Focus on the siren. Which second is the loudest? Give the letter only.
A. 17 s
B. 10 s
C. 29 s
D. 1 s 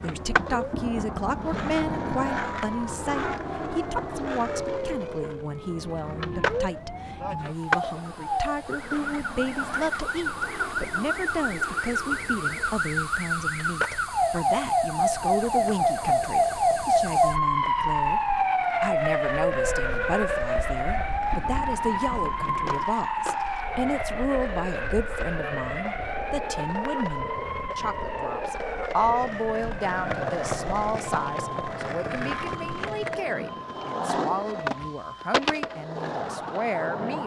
A.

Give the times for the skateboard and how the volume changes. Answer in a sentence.
The skateboard can be heard from 0.0 to 37.2 s, getting quieter then louder.